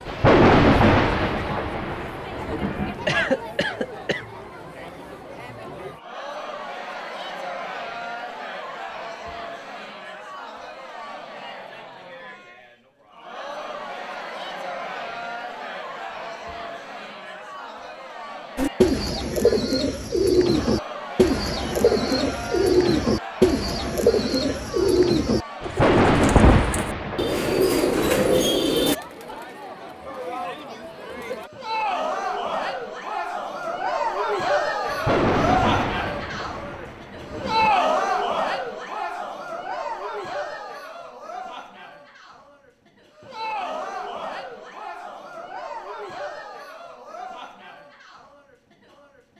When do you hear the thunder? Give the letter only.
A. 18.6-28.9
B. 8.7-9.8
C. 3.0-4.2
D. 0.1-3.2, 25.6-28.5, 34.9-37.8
D.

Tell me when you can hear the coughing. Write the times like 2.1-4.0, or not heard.
3.0-4.2.